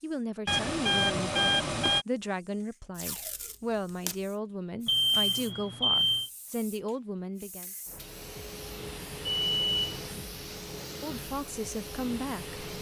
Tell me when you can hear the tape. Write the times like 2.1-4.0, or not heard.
3.0-4.2.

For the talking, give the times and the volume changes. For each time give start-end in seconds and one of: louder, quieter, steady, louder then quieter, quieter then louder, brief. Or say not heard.
0.0-7.7 steady
11.0-12.6 brief.